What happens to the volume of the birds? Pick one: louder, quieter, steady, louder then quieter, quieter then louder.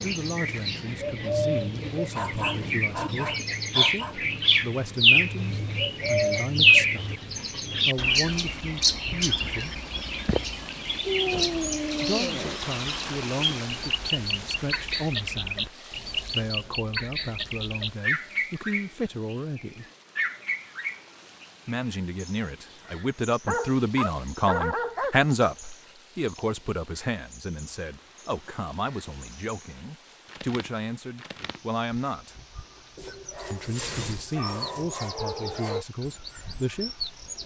quieter.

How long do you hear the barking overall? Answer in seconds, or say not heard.
8 s.